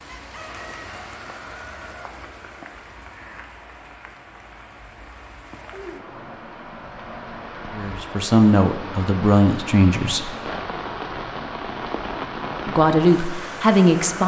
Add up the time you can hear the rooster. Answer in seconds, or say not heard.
2 s.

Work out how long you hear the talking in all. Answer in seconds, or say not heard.
4 s.